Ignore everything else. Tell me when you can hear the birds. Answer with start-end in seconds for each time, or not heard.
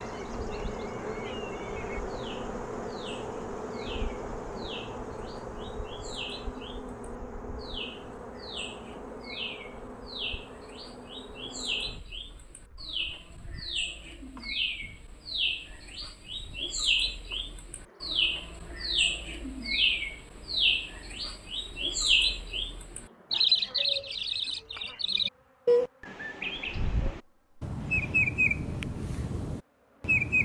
0.0-30.4.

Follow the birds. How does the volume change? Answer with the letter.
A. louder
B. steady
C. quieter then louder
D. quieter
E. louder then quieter
A.